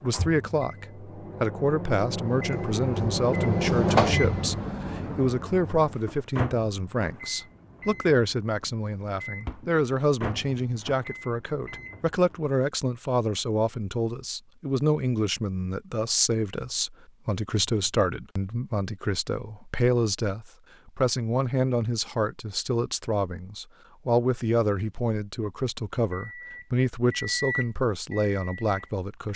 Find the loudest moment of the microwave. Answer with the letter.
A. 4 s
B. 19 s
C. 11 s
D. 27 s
A.